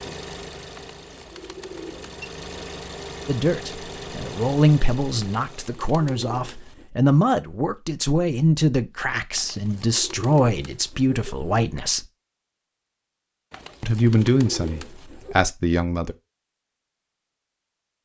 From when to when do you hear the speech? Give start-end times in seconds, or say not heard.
3.2-12.1, 13.8-16.1.